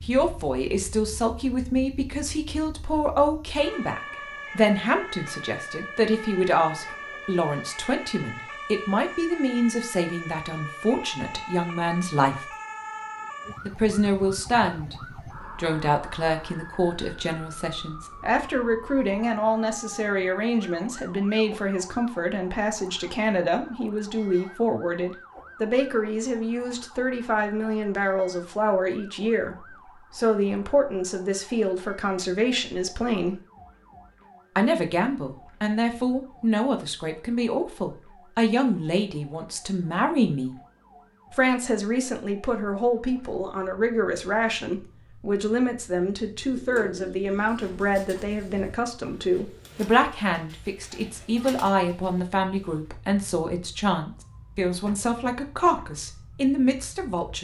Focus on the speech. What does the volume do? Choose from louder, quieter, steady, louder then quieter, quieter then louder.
steady.